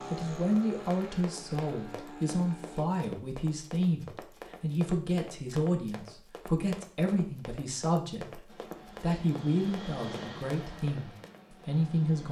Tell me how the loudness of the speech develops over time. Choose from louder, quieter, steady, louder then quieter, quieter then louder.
steady.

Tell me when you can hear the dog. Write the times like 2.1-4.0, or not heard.
not heard.